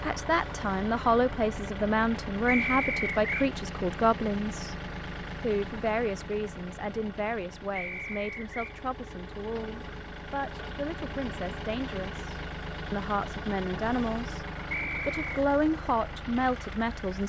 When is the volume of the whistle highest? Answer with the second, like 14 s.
3 s.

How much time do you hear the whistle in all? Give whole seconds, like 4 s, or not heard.
3 s.